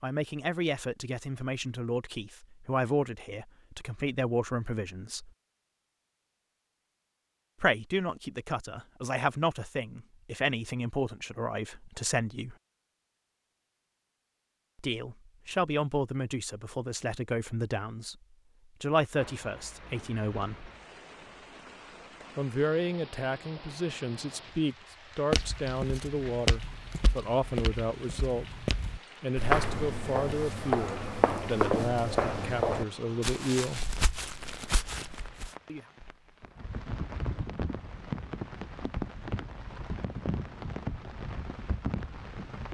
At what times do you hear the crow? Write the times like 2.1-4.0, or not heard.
not heard.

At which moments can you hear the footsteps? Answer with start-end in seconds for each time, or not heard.
25.3-35.5.